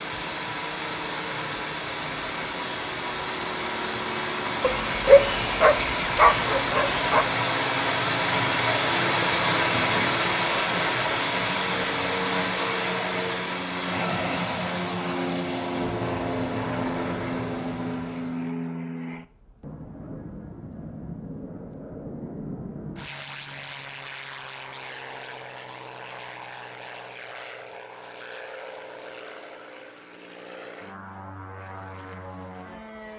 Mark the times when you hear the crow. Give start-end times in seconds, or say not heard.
not heard.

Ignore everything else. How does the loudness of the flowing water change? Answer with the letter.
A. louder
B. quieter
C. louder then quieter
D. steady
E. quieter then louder
C.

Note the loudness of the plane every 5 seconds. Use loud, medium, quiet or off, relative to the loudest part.
medium, loud, loud, loud, medium, medium, medium.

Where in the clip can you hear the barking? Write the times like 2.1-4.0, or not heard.
4.6-7.3.